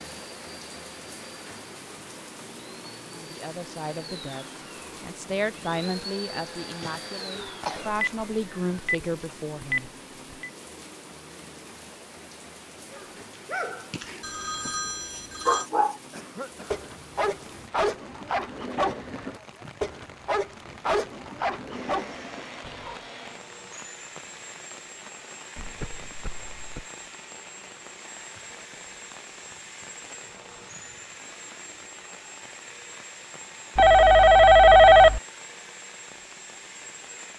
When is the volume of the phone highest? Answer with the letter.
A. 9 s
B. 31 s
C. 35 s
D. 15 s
C.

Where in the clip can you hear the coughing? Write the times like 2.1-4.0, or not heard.
6.6-8.0, 16.1-16.9, 25.6-26.9.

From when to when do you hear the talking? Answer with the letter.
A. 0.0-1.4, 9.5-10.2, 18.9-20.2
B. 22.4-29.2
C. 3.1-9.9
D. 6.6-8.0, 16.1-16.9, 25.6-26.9
C.